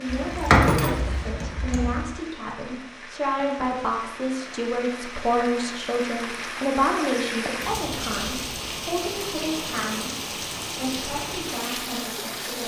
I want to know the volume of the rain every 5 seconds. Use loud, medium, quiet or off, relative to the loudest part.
medium, loud, loud.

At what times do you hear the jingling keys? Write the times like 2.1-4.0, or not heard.
0.1-2.0.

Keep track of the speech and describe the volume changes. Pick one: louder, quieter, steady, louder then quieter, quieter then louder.
louder then quieter.